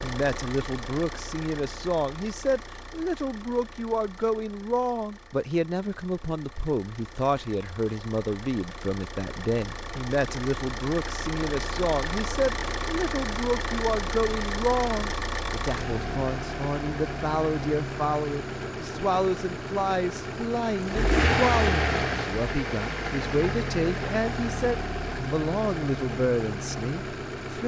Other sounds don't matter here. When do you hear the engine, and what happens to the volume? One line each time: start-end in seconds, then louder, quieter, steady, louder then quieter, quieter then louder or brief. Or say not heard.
0.0-27.6 louder.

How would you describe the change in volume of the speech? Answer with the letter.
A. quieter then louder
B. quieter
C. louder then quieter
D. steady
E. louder
D.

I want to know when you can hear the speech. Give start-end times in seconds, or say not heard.
0.0-27.6.